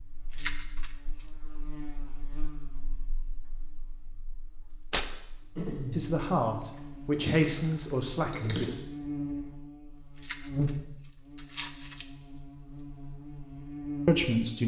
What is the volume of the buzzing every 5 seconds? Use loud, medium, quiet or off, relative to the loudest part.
quiet, loud, loud.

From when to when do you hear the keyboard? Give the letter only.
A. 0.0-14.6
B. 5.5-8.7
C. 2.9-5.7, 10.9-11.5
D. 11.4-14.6
B.